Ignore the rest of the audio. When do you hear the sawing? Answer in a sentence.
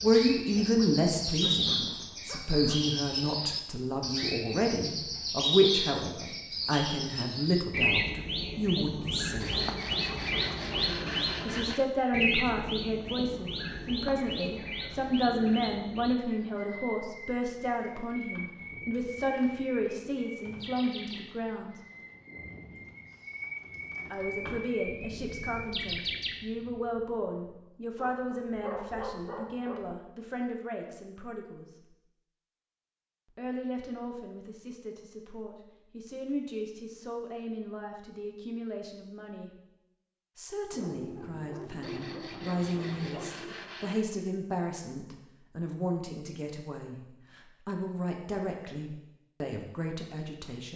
The sawing can be heard from 9.4 to 11.9 s and from 41.8 to 44.0 s.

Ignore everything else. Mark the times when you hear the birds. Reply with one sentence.
The birds can be heard from 0.0 to 26.4 s.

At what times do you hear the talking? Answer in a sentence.
You can hear the talking from 0.0 to 9.5 s, from 11.4 to 21.8 s, from 24.1 to 31.6 s, from 33.4 to 39.5 s and from 40.4 to 50.7 s.